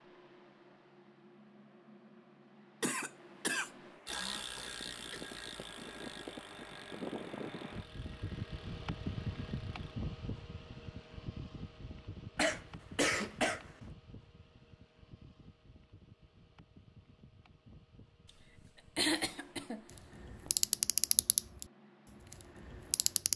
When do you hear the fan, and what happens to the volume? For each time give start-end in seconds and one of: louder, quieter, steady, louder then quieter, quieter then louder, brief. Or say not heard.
0.0-23.3 louder then quieter.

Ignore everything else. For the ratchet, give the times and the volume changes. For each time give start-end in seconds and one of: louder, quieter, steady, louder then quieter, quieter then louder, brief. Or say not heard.
4.0-9.8 quieter
19.9-21.6 brief
22.3-23.3 brief.